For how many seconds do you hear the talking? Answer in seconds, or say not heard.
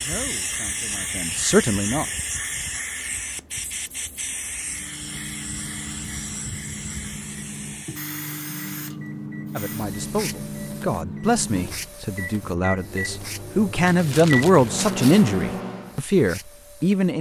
10 s.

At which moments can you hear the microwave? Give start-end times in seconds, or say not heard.
4.6-16.0.